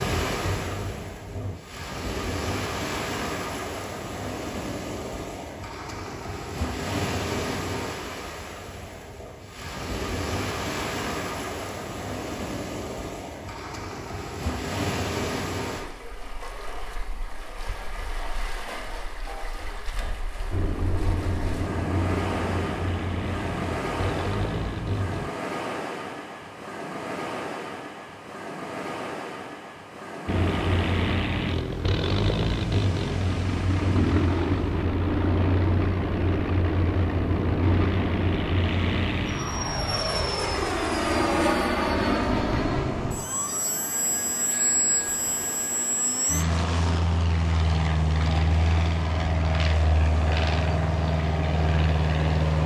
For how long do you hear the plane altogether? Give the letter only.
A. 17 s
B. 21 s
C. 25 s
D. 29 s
D.